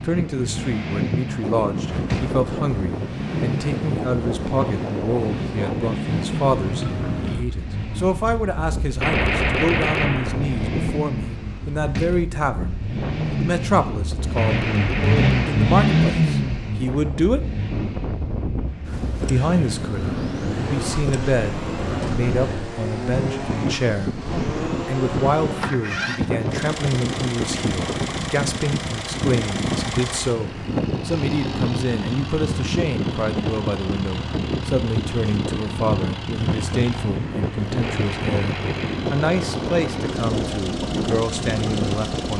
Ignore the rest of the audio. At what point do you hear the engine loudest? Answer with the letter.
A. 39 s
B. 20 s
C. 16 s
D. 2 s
C.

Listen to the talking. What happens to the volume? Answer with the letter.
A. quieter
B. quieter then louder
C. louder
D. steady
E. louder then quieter
D.